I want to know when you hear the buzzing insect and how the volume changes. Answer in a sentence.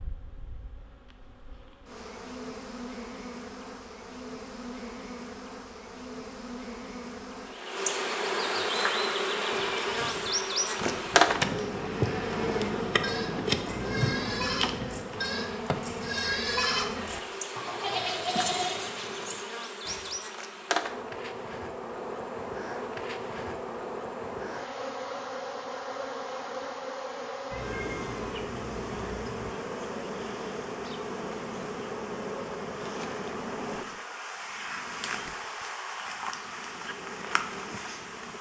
The buzzing insect can be heard from 0.0 to 38.3 s, getting louder then quieter.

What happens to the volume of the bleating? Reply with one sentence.
The volume of the bleating goes up.